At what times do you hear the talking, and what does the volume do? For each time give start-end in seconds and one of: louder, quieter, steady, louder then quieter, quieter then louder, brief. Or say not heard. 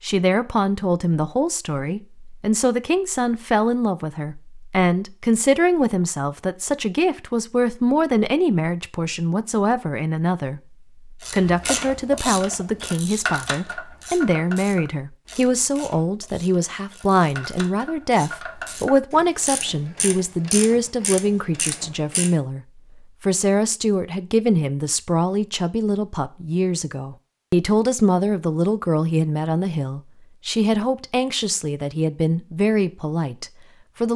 0.0-34.1 steady.